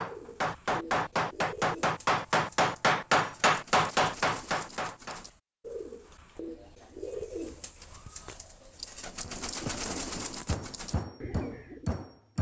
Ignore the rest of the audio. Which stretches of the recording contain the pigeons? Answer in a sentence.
The pigeons can be heard from 0.0 to 12.1 s.